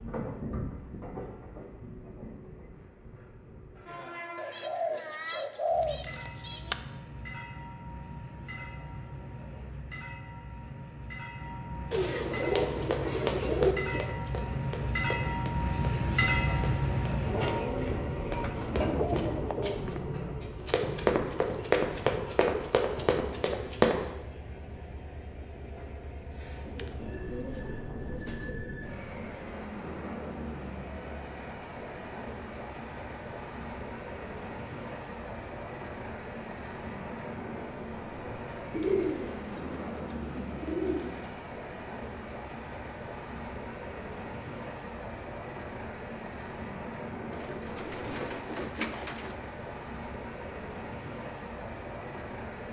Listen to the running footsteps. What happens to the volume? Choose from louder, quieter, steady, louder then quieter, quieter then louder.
quieter then louder.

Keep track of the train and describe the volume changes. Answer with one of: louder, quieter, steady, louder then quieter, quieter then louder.
louder then quieter.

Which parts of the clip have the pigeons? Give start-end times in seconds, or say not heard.
4.3-6.8, 11.9-14.1, 18.4-20.0, 26.6-28.8, 38.7-41.4, 47.3-49.4.